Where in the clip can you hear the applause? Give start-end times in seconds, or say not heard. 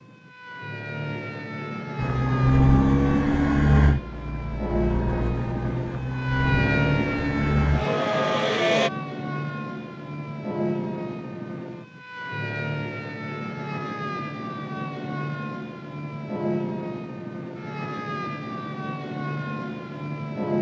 not heard.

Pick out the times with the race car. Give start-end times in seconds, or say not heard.
1.9-8.9.